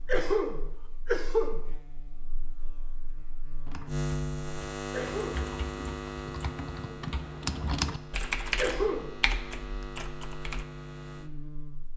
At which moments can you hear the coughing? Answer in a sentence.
The coughing can be heard from 0.1 to 1.6 s, from 4.9 to 5.5 s and from 8.6 to 9.2 s.